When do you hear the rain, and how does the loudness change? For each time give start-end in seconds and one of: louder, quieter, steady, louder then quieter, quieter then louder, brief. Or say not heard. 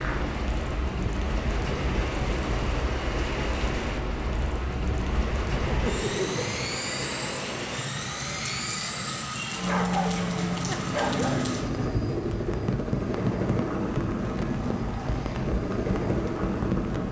0.0-17.0 steady.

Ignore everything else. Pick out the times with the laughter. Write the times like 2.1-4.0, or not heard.
5.7-6.6.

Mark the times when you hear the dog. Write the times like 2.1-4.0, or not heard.
9.6-11.4.